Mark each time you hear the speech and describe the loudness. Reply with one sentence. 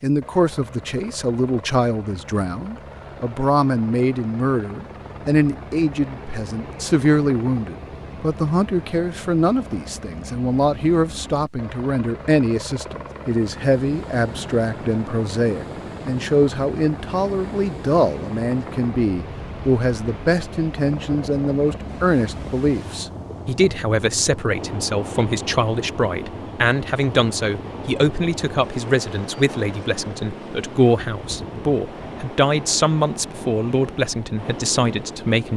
You can hear the speech from 0.0 to 35.5 s, at a steady volume.